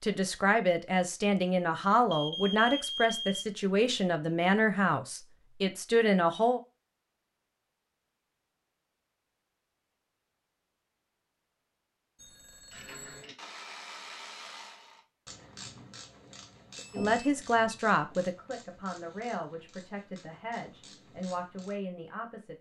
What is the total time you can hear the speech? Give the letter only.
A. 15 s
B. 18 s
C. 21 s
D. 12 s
D.